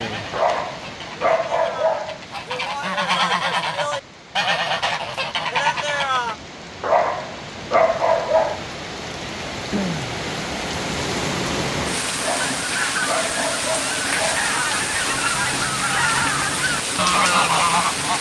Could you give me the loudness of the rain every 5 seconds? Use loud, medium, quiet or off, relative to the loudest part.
quiet, medium, loud, loud.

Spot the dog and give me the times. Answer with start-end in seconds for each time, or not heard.
0.3-2.2, 6.8-8.6, 12.2-14.5.